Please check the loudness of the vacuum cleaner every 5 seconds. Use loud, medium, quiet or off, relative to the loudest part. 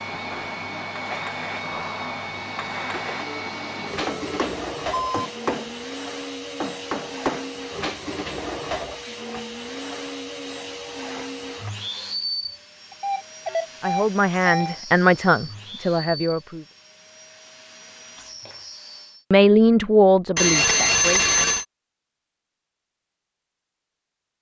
loud, loud, loud, medium, off.